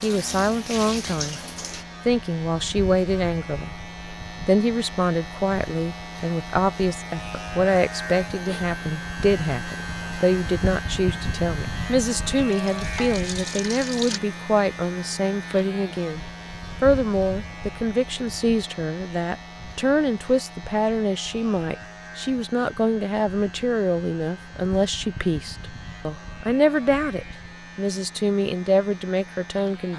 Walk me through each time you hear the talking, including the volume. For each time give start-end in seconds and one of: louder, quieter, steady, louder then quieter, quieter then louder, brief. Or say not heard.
0.0-1.4 brief
2.0-3.8 brief
4.5-29.9 steady.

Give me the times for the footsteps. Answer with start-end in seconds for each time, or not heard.
not heard.